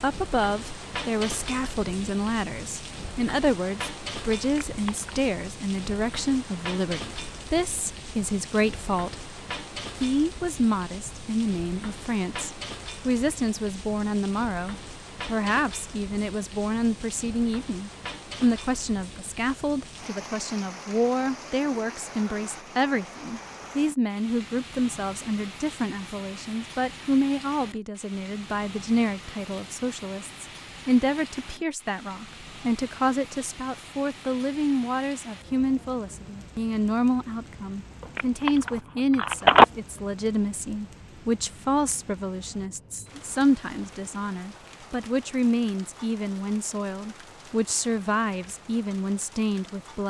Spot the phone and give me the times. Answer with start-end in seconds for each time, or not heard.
4.4-5.2, 38.1-39.6.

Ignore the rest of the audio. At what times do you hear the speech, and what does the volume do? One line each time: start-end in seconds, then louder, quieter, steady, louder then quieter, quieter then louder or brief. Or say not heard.
0.0-9.3 steady
10.0-50.0 steady.